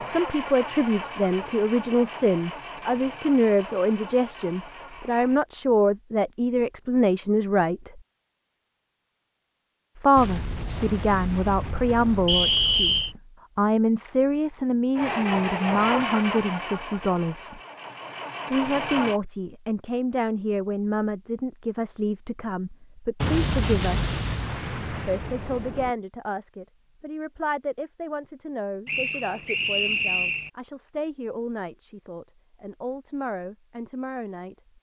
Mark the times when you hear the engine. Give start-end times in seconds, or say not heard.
0.0-5.4, 14.9-19.2.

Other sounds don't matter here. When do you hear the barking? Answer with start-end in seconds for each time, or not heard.
not heard.